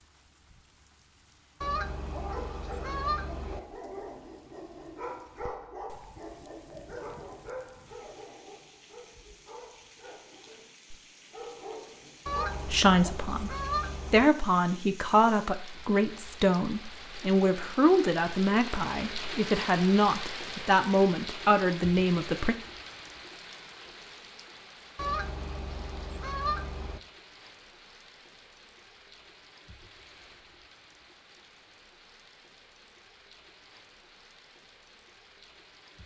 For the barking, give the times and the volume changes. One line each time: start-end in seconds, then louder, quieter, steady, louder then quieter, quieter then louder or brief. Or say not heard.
1.9-13.2 quieter then louder.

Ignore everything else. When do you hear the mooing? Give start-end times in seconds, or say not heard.
not heard.